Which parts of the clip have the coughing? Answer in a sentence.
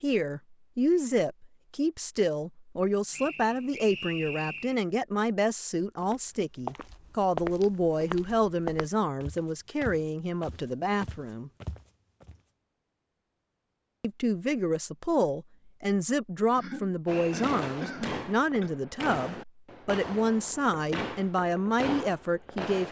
The coughing can be heard from 16.5 to 18.7 s.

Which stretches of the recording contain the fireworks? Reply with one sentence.
You can hear the fireworks from 17.1 to 22.8 s.